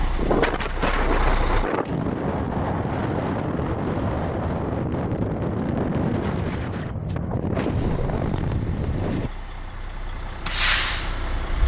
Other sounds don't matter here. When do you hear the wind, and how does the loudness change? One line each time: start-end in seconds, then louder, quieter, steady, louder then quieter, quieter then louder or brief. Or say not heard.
0.0-9.3 steady.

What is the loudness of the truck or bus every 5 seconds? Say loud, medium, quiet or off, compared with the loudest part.
medium, quiet, loud.